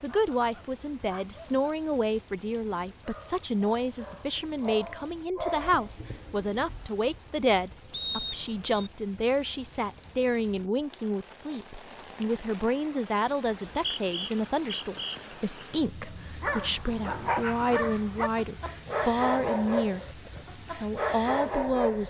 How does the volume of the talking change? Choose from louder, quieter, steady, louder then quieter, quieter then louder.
steady.